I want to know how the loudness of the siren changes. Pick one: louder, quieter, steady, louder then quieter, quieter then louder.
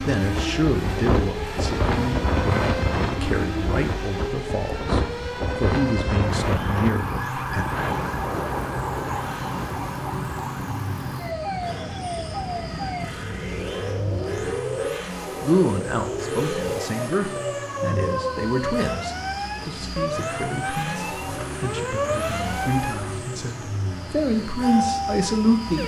steady.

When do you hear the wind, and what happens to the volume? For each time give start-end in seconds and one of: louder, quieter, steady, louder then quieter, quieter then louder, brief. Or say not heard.
0.1-14.6 quieter.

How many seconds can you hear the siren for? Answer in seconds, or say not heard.
26 s.